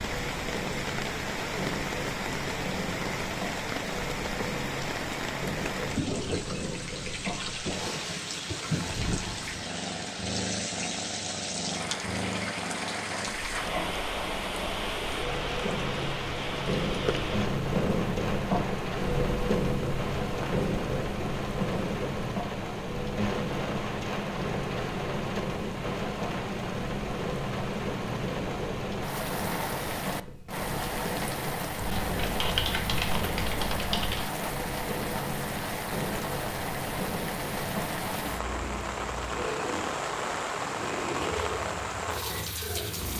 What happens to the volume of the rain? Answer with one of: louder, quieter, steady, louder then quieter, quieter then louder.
steady.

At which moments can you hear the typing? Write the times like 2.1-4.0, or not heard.
32.0-34.2.